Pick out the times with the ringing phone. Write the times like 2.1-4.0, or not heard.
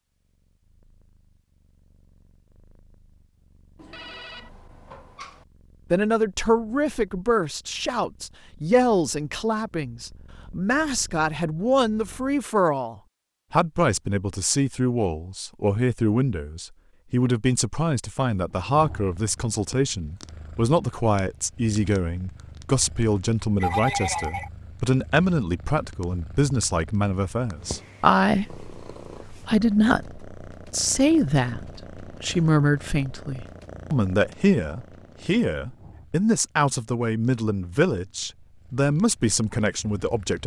3.8-5.5, 23.6-24.5.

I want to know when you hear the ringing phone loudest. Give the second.
24 s.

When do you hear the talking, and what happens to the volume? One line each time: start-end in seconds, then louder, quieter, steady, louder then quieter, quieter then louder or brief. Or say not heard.
5.9-40.4 steady.